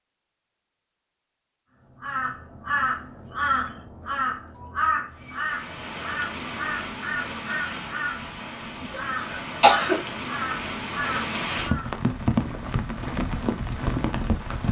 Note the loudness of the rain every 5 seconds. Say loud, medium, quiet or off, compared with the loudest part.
off, medium, loud.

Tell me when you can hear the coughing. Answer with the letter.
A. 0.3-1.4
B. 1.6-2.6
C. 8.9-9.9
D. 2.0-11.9
C.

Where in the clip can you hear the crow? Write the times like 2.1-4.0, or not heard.
2.0-11.9.